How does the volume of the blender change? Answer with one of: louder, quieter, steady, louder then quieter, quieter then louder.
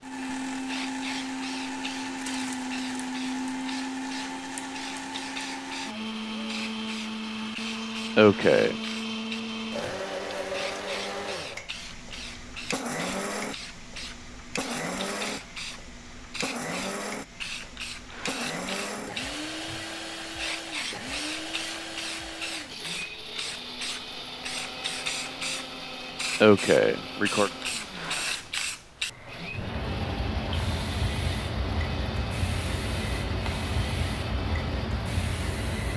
quieter.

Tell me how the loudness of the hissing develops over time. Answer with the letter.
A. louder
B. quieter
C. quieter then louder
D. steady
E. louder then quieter
A.